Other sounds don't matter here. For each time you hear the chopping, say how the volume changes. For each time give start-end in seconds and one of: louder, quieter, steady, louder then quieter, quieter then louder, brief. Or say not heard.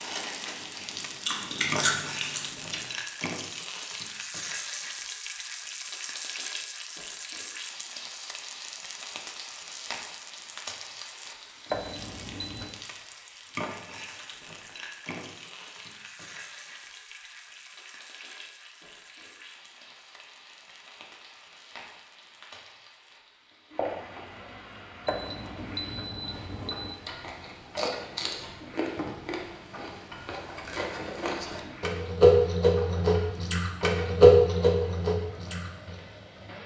not heard.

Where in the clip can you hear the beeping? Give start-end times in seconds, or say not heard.
11.7-12.8, 25.1-26.9.